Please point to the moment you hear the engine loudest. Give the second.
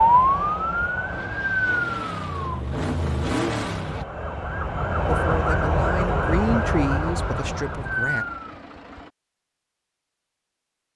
3 s.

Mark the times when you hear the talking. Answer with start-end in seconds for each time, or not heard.
5.0-8.2.